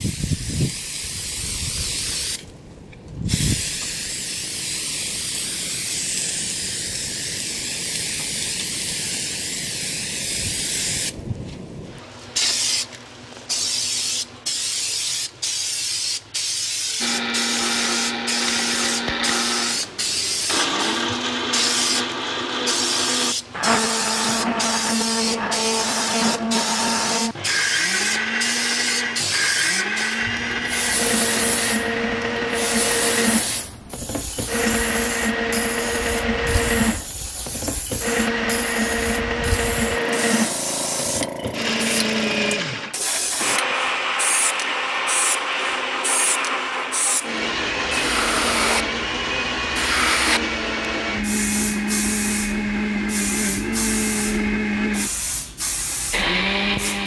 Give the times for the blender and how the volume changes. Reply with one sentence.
The blender can be heard from 17.0 to 57.0 s, at a steady volume.